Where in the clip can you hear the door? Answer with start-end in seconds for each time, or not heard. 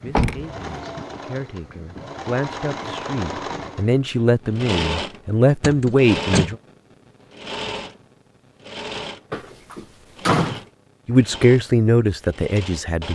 0.1-0.7, 5.6-6.5, 9.3-10.6.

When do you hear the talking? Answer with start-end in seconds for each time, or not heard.
0.0-6.5, 11.1-13.0.